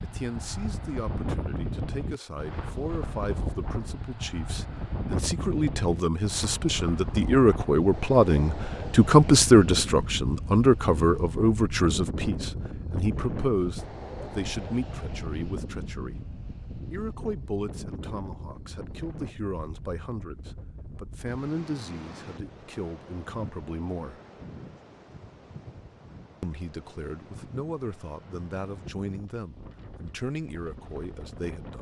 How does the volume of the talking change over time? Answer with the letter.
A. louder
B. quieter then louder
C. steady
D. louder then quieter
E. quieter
D.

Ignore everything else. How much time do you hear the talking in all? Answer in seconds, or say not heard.
29 s.